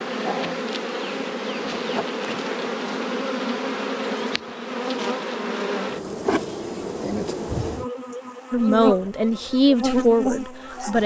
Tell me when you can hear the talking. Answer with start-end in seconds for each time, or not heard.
8.5-11.0.